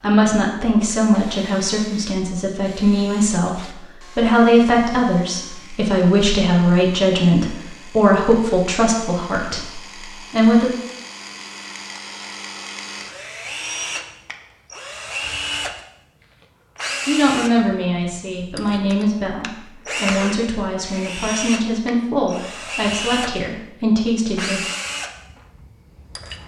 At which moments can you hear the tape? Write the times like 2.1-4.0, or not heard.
not heard.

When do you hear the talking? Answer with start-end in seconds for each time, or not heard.
0.0-10.7, 17.1-24.6.